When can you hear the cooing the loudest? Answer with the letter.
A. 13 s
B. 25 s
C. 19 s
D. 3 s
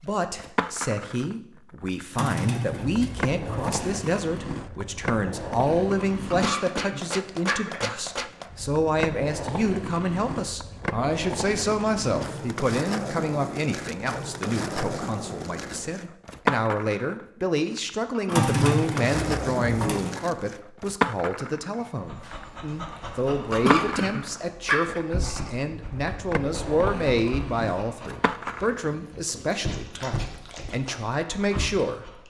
C.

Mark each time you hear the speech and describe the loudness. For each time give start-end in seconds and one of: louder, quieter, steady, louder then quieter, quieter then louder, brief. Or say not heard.
0.0-32.2 steady.